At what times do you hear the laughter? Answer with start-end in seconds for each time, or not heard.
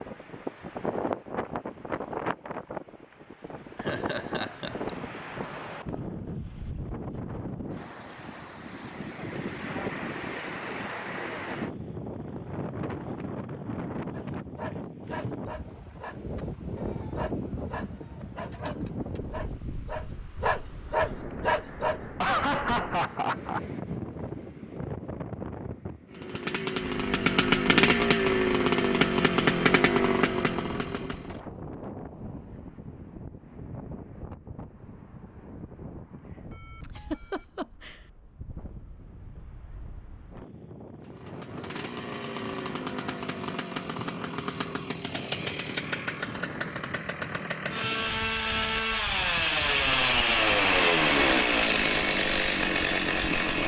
3.8-4.9, 22.2-23.6, 36.8-38.0.